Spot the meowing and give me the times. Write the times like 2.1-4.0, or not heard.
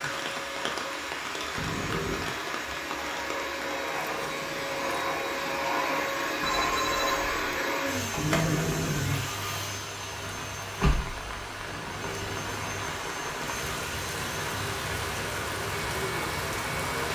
1.6-2.3, 8.2-9.2, 11.7-12.8.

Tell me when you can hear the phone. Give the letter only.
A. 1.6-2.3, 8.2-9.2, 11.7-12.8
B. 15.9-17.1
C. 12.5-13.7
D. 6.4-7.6
D.